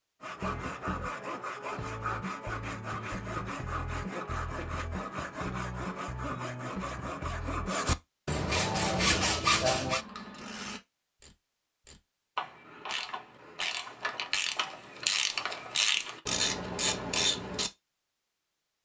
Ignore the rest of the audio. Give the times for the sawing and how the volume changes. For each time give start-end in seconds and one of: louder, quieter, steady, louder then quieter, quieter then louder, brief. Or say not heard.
0.2-10.1 louder.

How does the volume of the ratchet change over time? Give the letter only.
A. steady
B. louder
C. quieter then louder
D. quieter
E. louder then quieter
B.